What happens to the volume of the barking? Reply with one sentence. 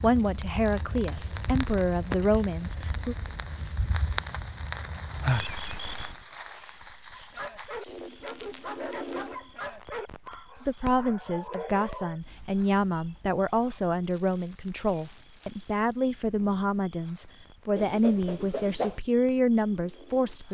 The loudness of the barking goes down, then up.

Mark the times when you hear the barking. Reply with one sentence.
You can hear the barking from 7.1 to 12.2 s.